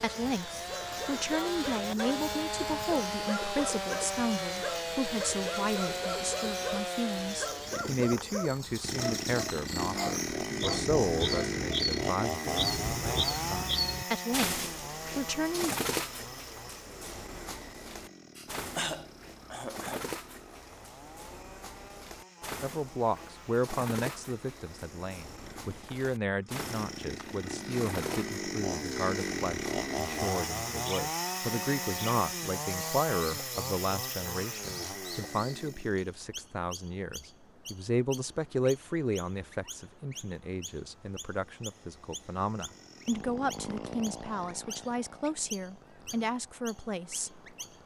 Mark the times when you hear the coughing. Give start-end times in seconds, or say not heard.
18.4-20.1.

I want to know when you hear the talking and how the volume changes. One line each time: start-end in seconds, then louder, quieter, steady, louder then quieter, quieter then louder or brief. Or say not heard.
0.0-15.8 steady
22.6-47.4 steady.